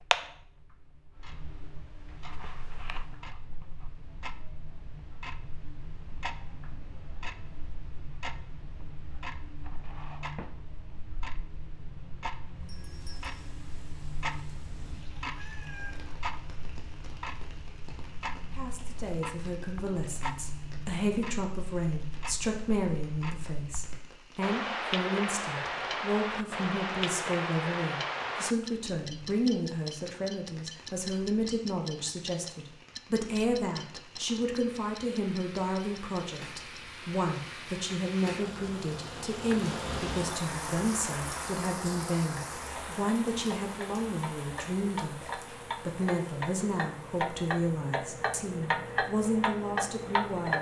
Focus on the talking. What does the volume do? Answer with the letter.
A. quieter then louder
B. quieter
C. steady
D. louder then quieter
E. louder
C.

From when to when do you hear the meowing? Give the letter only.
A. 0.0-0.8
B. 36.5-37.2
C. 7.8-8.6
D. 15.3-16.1
D.